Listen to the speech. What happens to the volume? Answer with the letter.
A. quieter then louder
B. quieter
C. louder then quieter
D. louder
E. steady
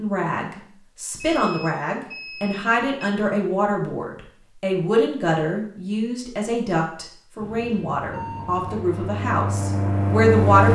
E.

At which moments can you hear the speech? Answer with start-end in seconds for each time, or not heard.
0.0-10.6.